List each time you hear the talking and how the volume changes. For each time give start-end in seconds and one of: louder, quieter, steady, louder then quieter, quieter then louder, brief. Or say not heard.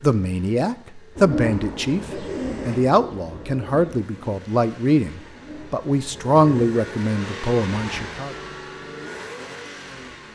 0.0-8.3 steady.